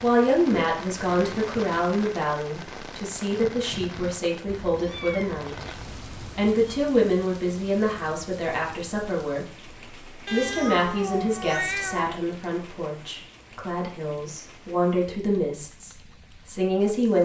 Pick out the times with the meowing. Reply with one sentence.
The meowing can be heard from 4.5 to 6.8 s and from 10.2 to 12.2 s.